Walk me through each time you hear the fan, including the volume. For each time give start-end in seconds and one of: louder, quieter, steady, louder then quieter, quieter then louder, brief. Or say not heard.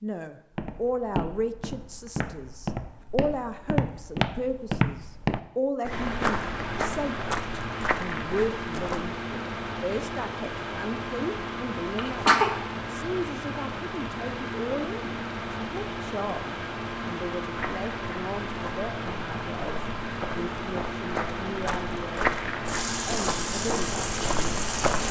5.9-25.0 steady.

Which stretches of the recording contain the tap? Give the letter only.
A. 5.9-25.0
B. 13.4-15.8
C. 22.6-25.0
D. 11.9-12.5
C.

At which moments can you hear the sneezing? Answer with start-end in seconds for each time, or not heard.
11.9-12.5.